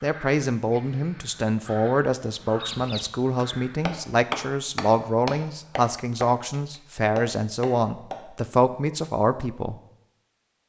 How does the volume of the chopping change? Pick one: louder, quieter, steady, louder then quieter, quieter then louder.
quieter then louder.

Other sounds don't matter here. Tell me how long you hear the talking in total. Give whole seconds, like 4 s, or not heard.
10 s.